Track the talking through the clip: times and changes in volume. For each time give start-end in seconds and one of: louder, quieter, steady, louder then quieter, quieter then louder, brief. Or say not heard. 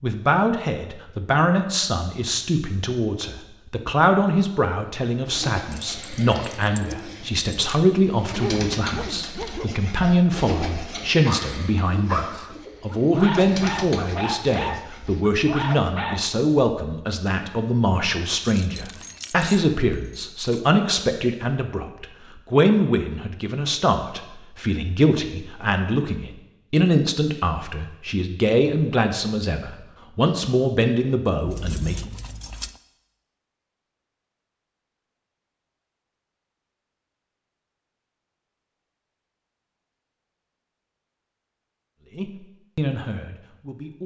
0.0-32.1 steady
42.1-44.0 brief.